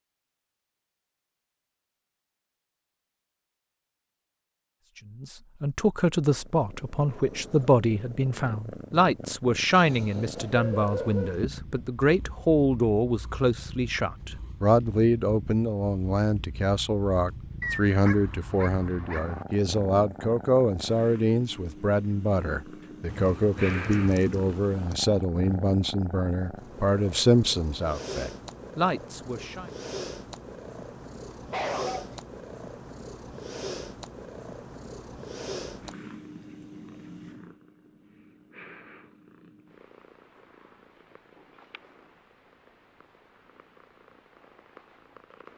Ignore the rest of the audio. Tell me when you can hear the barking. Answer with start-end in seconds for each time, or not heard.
10.3-11.4, 17.6-19.4, 31.3-32.2.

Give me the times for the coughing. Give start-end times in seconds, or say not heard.
not heard.